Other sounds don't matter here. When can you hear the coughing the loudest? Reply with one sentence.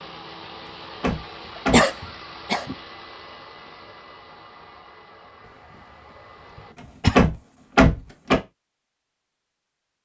The volume of the coughing peaks at 2 seconds.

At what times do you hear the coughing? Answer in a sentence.
You can hear the coughing from 1.6 to 2.8 s and from 6.5 to 7.2 s.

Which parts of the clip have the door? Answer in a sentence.
The door can be heard from 1.0 to 1.9 s and from 7.2 to 8.4 s.